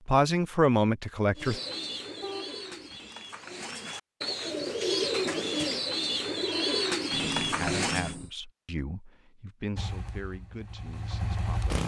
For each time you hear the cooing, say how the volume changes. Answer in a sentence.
The cooing can be heard from 1.4 to 8.2 s, getting louder.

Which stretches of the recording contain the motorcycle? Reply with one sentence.
You can hear the motorcycle from 9.8 to 11.8 s.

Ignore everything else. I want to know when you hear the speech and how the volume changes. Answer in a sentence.
You can hear the speech briefly from 0.1 to 1.6 s; and from 7.5 to 11.8 s, getting quieter.